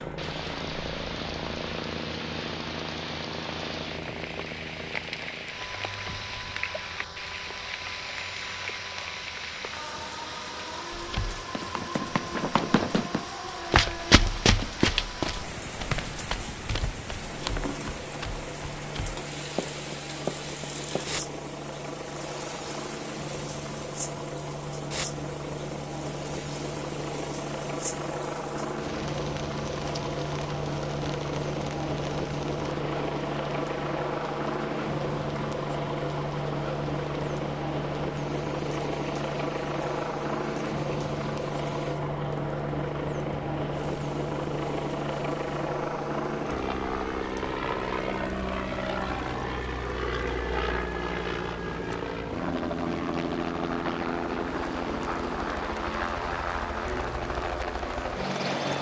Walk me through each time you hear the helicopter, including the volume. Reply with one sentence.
The helicopter can be heard from 0.0 to 58.7 s, getting louder.